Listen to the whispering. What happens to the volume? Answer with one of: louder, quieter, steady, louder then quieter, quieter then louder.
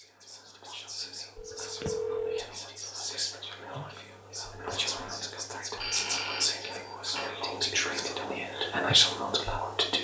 louder.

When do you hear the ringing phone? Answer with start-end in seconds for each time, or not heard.
1.4-2.4, 5.8-7.3.